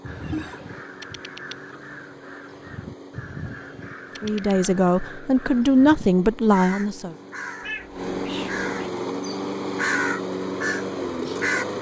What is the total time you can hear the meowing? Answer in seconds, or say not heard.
2 s.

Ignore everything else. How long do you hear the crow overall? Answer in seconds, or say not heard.
11 s.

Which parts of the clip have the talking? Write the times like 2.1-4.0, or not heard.
4.2-7.2.